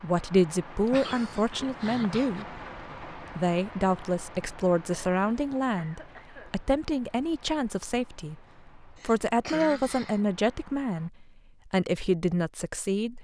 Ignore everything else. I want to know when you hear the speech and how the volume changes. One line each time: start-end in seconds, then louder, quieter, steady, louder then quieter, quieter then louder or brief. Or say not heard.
0.0-13.1 steady.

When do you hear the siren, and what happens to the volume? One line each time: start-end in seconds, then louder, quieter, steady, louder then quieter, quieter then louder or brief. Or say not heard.
not heard.